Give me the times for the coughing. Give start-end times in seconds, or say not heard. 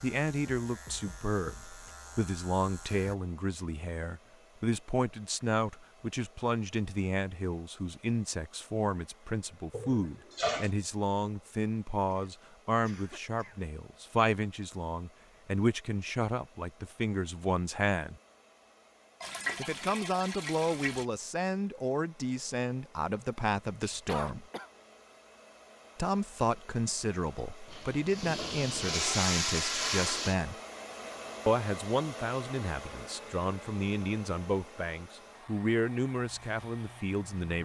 12.1-13.7, 23.9-24.7.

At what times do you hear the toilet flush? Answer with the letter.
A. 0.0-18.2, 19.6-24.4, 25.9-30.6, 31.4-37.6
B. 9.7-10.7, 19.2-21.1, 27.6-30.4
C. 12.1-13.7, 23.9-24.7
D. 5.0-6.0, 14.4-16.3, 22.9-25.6
B.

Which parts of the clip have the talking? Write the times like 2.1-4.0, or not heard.
0.0-18.2, 19.6-24.4, 25.9-30.6, 31.4-37.6.